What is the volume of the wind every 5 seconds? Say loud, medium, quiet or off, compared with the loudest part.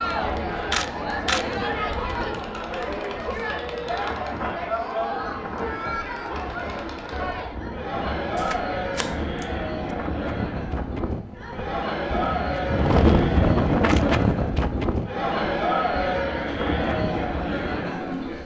quiet, quiet, loud, medium.